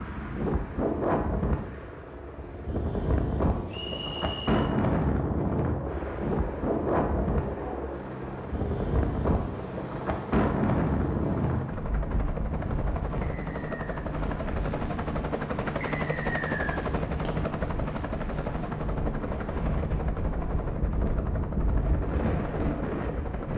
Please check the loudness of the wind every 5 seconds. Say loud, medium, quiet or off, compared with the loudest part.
loud, loud, loud, medium, loud.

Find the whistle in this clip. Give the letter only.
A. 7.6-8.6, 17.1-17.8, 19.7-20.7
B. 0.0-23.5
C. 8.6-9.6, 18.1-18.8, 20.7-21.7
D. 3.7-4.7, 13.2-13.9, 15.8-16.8
D.